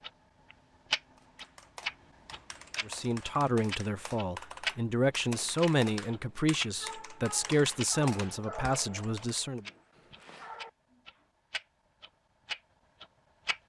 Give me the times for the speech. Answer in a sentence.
The speech can be heard from 2.9 to 9.7 s.